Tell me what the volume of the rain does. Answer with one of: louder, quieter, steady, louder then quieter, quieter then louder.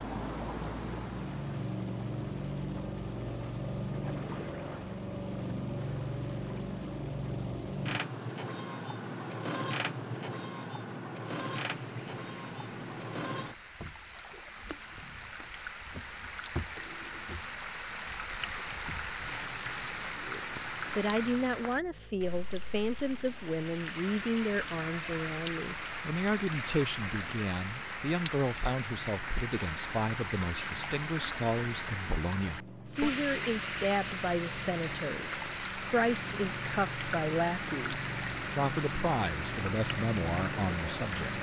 louder.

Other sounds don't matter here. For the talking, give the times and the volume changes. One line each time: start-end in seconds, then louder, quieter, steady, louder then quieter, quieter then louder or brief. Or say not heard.
20.1-41.3 steady.